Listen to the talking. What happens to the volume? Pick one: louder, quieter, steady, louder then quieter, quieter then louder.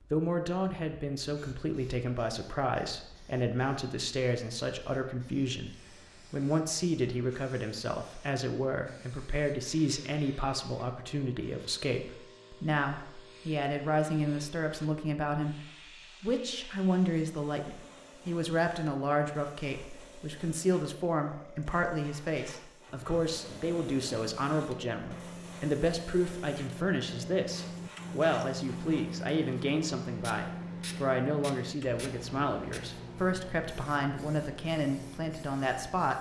steady.